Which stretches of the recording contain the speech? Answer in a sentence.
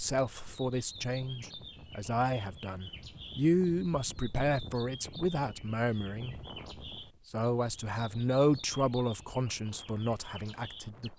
You can hear the speech from 0.0 to 6.4 s and from 7.2 to 11.1 s.